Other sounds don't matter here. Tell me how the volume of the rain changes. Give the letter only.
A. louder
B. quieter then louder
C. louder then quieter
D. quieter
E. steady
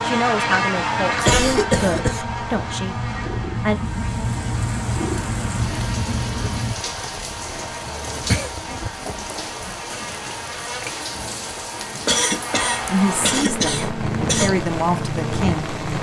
E.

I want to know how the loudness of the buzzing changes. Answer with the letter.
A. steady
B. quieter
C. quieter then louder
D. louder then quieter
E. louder
C.